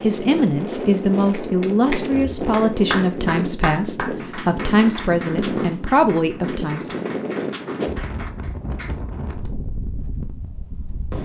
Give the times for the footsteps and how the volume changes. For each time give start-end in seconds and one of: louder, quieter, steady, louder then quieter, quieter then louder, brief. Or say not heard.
not heard.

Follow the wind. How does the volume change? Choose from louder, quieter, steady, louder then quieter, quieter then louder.
quieter.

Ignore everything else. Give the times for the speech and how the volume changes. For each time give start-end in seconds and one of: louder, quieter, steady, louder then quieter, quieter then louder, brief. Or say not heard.
0.0-7.0 steady.